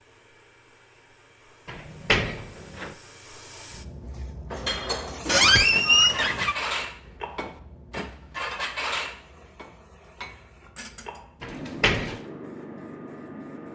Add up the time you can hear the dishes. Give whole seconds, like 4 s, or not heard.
8 s.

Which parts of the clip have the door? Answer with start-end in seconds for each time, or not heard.
1.6-3.0, 5.2-6.5, 11.4-12.2.